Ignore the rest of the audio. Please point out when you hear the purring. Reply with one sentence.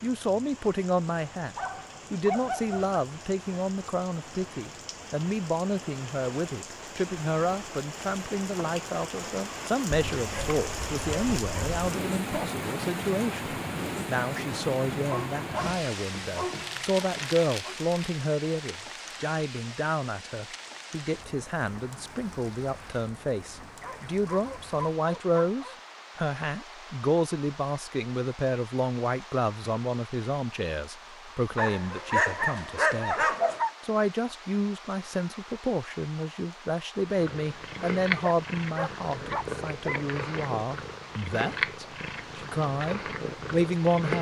The purring can be heard from 37.0 to 44.1 s.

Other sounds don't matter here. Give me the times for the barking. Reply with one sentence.
You can hear the barking from 1.6 to 2.9 s, from 9.9 to 11.8 s, from 14.9 to 17.8 s, from 23.8 to 25.8 s, from 31.6 to 33.7 s and from 38.2 to 40.0 s.